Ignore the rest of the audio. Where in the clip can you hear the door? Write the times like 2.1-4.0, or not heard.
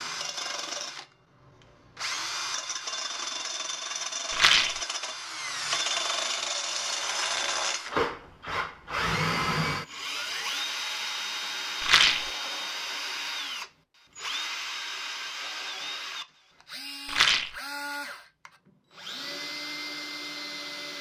not heard.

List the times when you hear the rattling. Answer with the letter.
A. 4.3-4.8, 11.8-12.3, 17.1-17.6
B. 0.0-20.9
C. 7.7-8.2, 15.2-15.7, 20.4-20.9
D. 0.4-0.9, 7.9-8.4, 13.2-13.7
A.